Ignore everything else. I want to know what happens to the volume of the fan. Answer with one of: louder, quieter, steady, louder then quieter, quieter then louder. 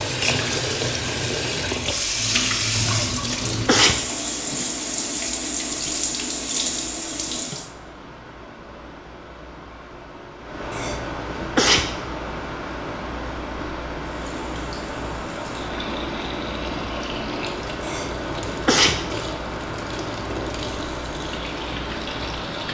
louder.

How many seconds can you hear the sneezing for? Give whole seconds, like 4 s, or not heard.
4 s.